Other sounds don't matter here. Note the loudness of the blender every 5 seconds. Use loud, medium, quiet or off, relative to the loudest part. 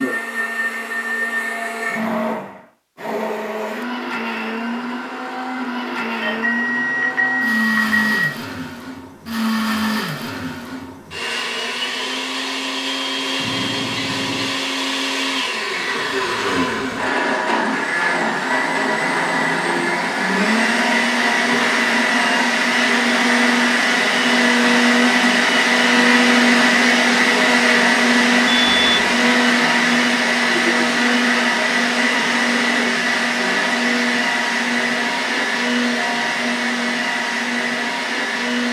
medium, medium, medium, medium, loud, loud, loud, medium.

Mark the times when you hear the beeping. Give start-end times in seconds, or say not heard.
6.2-8.2, 13.3-14.6, 28.4-29.1.